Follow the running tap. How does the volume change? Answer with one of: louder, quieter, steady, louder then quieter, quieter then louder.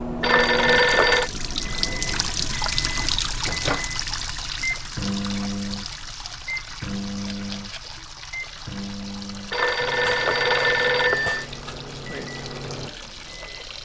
quieter.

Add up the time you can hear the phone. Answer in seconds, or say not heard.
3 s.